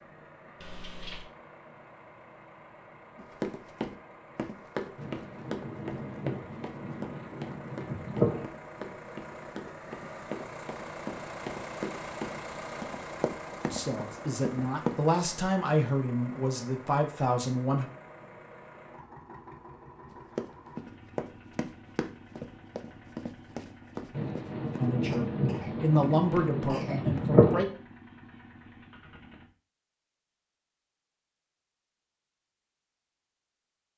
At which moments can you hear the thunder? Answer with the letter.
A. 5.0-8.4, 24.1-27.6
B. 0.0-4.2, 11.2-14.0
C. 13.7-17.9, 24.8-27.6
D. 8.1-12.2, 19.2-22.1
A.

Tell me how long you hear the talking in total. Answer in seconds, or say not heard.
7 s.